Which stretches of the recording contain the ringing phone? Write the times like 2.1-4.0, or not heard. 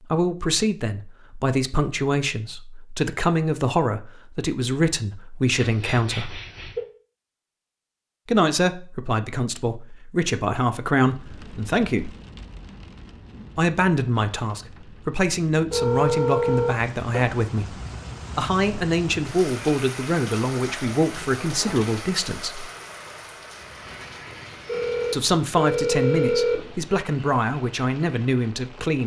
5.5-6.8, 15.7-17.3, 24.6-26.6.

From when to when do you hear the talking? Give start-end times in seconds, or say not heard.
0.1-6.4, 8.2-12.1, 13.6-17.8, 18.4-22.6, 25.1-29.0.